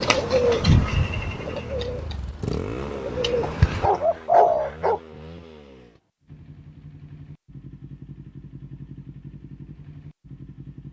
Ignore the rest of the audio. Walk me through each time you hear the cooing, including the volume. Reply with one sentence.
You can hear the cooing from 0.0 to 4.7 s, getting quieter then louder.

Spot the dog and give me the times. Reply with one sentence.
You can hear the dog from 3.4 to 5.0 s.